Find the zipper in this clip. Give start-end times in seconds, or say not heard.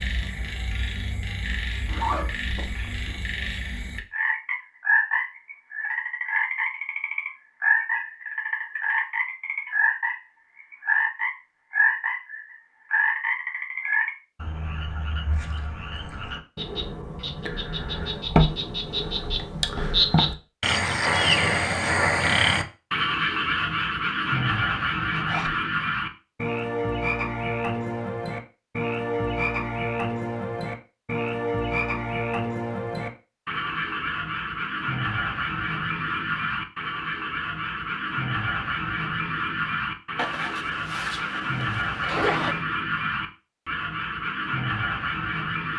1.9-3.2, 25.1-25.6, 40.1-42.6.